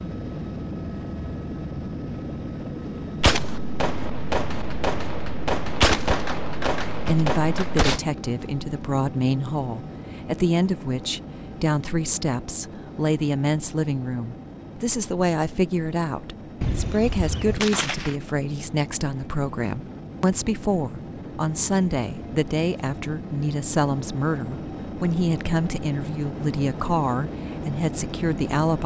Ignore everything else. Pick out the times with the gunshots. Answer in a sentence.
You can hear the gunshots from 3.2 to 8.0 s and from 16.6 to 18.1 s.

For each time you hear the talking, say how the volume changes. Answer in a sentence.
The talking can be heard from 7.0 to 28.8 s, at a steady volume.